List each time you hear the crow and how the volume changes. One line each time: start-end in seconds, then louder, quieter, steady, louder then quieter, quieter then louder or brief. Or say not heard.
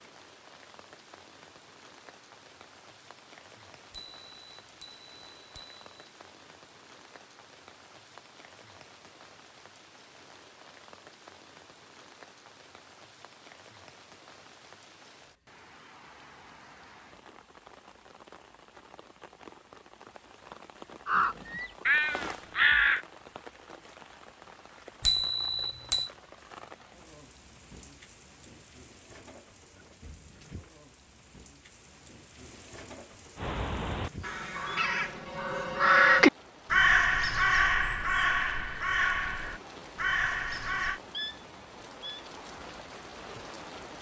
21.1-23.0 brief
33.4-41.0 louder then quieter.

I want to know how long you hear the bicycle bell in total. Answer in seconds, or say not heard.
3 s.